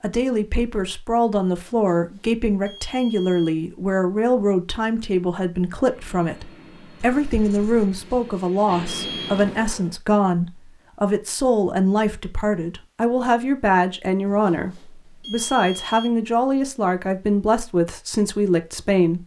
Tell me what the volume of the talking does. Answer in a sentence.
The loudness of the talking stays about the same.